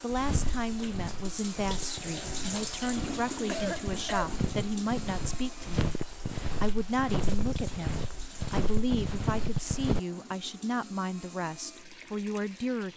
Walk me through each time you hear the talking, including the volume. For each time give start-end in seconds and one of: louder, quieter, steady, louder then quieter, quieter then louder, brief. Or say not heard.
0.0-12.9 steady.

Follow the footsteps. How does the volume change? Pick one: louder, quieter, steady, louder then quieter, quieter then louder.
louder.